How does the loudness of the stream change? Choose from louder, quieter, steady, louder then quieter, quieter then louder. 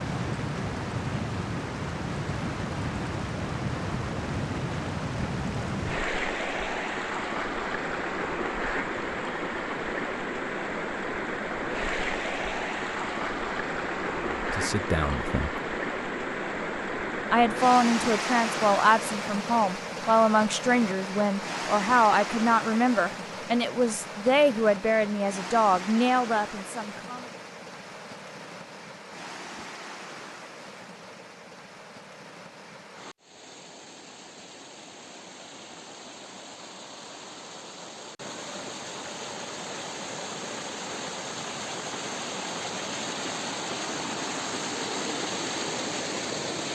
quieter then louder.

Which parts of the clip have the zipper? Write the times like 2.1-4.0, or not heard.
not heard.